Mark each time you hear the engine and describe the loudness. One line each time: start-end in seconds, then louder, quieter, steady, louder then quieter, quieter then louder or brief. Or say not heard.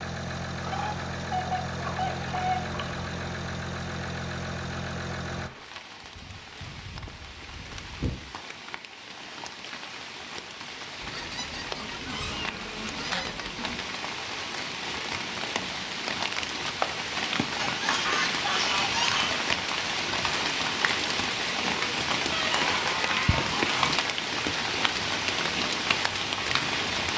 0.0-5.5 steady.